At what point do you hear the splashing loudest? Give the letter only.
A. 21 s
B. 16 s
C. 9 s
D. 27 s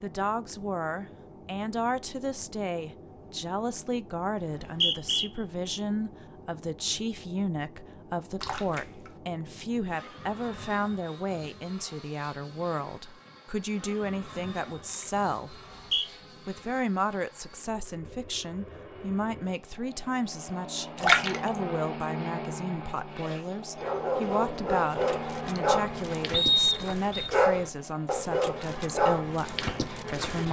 A.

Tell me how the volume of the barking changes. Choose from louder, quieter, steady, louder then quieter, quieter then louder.
steady.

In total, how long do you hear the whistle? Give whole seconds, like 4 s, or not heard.
2 s.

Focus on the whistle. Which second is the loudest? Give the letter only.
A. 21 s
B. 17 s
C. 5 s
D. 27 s
D.